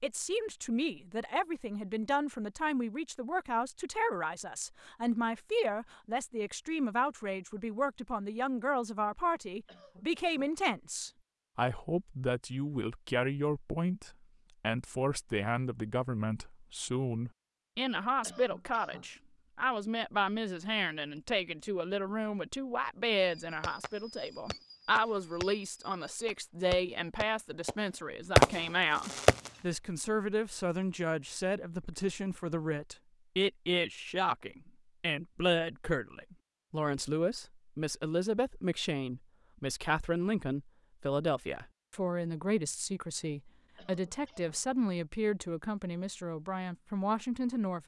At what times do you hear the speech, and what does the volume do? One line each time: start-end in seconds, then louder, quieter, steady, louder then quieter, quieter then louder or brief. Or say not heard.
0.0-47.8 steady.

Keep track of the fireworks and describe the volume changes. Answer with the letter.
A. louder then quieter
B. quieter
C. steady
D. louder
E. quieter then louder
D.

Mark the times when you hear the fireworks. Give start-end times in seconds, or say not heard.
23.1-29.5.